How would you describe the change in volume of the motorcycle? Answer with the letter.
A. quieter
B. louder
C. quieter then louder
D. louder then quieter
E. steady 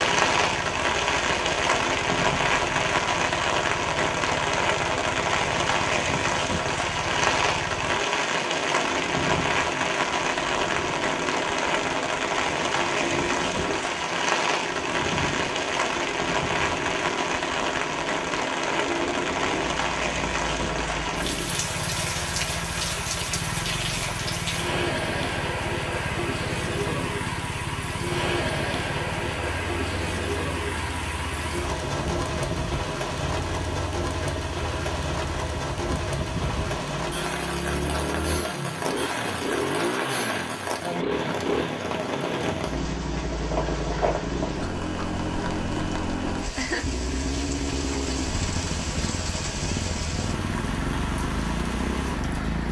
B.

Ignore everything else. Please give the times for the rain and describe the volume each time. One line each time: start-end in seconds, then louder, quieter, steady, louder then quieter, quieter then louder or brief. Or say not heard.
0.0-52.6 quieter.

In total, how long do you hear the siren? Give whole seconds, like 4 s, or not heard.
not heard.